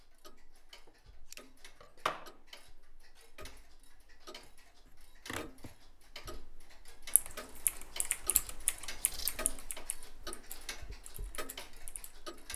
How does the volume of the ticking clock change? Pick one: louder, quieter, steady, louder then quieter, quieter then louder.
louder.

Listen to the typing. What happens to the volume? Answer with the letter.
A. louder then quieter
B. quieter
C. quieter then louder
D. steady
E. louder
B.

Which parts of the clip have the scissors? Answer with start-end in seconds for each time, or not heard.
0.8-2.3, 4.4-5.8, 9.0-9.5.